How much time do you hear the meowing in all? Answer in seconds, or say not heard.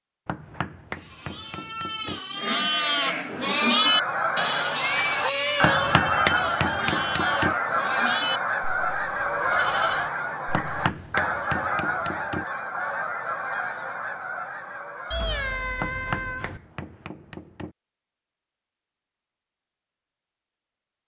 3 s.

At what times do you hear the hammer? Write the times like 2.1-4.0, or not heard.
0.2-2.2, 5.6-7.5, 10.5-12.4, 15.8-17.7.